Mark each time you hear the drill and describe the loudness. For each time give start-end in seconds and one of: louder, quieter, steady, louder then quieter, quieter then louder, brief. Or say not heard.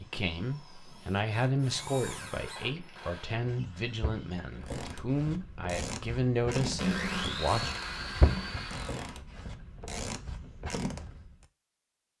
0.0-4.5 louder then quieter
6.6-9.2 brief.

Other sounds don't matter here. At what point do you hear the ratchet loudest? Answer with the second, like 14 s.
8 s.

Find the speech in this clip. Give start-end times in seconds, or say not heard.
0.0-7.8.